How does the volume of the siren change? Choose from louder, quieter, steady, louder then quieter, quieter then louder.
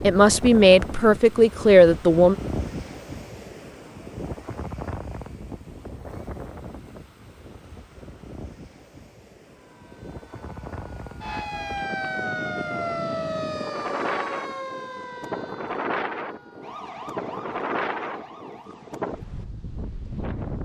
louder then quieter.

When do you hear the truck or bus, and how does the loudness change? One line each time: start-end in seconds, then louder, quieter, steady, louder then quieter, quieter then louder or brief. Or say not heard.
not heard.